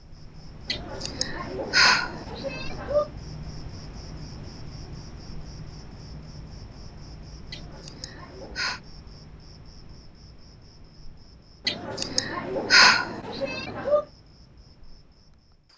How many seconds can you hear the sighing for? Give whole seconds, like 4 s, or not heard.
6 s.